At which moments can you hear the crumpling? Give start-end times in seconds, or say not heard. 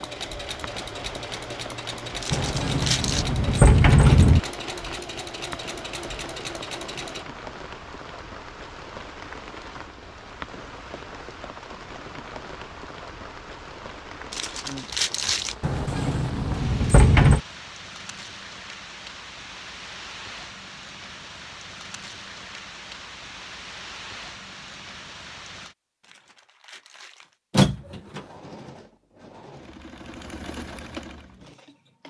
2.2-3.2, 14.3-15.6, 26.0-27.4.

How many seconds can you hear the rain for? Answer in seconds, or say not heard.
26 s.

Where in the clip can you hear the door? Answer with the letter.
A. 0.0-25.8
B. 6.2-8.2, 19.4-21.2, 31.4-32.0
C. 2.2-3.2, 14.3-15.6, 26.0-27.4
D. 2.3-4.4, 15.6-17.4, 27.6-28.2
D.